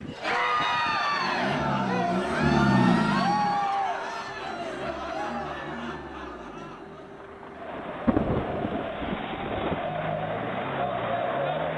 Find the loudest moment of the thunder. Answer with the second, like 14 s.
8 s.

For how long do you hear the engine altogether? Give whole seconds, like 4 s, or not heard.
12 s.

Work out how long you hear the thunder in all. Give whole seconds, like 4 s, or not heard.
3 s.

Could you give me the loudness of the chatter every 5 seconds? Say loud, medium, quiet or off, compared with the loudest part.
loud, medium, loud.